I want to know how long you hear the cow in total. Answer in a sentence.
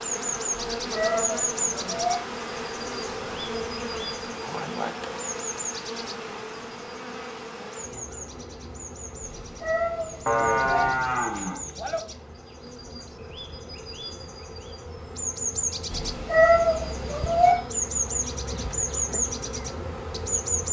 The cow can be heard for 2 seconds in total.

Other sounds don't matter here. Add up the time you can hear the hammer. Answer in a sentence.
The hammer can't be heard in this clip.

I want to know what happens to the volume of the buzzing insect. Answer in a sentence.
The volume of the buzzing insect goes down, then up.